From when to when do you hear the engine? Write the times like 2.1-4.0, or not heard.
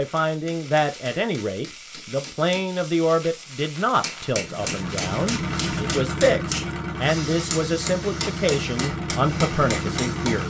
4.2-10.4.